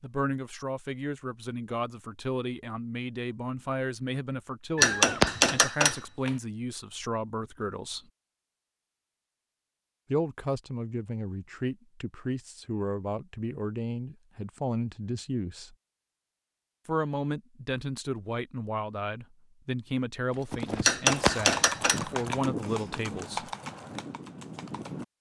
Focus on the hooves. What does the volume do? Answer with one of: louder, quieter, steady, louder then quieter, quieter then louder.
quieter.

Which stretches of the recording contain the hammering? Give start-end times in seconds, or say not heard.
4.8-6.3, 20.9-22.4.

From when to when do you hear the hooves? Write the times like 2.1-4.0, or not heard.
20.3-25.1.